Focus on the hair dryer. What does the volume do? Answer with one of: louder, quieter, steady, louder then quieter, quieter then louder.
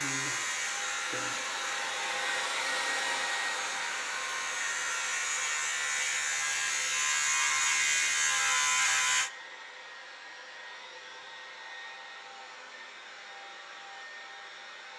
quieter.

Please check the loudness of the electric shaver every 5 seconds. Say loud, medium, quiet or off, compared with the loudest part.
medium, loud, off.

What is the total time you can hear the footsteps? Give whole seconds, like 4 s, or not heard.
not heard.